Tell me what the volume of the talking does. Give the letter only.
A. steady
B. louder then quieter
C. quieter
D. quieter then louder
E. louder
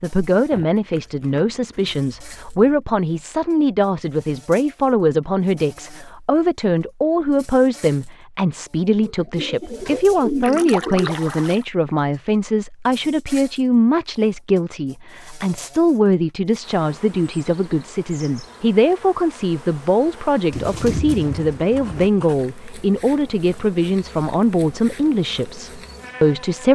A.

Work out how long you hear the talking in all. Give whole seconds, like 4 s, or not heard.
27 s.